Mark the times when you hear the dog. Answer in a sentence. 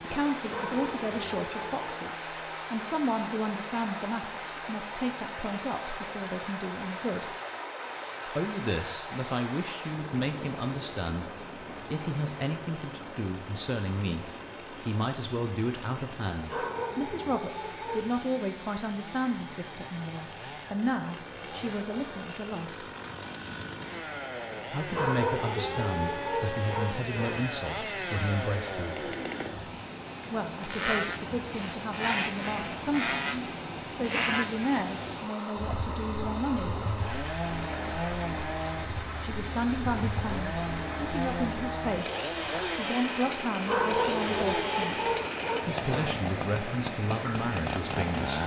You can hear the dog from 0.5 to 2.0 s, from 16.4 to 18.1 s, from 24.9 to 27.4 s and from 43.6 to 46.2 s.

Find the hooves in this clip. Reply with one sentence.
The hooves can't be heard in this clip.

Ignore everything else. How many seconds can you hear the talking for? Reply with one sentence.
You can hear the talking for 42 seconds altogether.